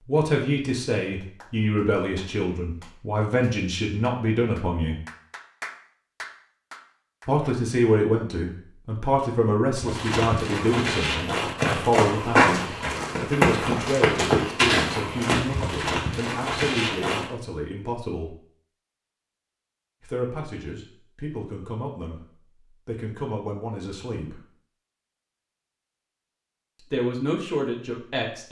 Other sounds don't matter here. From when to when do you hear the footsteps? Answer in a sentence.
You can hear the footsteps from 9.8 to 17.2 s.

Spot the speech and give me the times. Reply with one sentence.
You can hear the speech from 0.1 to 5.0 s, from 7.2 to 18.4 s, from 20.0 to 24.4 s and from 26.8 to 28.4 s.